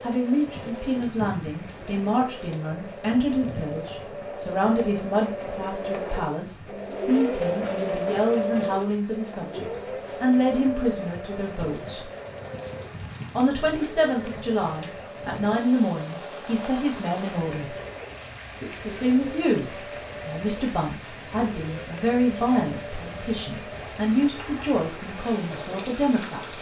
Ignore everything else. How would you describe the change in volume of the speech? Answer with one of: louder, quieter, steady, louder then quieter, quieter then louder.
steady.